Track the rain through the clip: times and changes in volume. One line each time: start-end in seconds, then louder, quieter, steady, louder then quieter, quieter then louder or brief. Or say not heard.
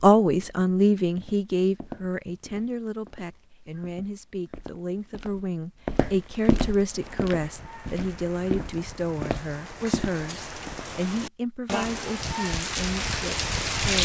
6.8-14.0 louder.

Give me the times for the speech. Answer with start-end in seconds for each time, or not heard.
0.0-14.0.